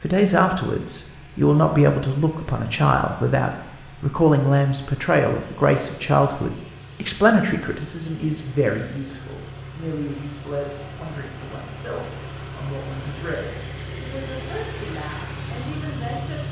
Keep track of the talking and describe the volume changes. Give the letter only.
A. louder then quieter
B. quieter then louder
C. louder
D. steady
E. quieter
E.